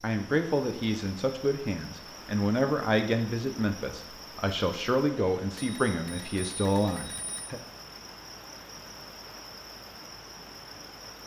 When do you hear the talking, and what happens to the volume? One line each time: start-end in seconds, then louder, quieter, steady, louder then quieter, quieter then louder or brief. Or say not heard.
0.0-7.6 steady.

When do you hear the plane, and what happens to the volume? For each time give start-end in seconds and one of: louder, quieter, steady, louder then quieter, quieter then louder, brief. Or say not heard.
not heard.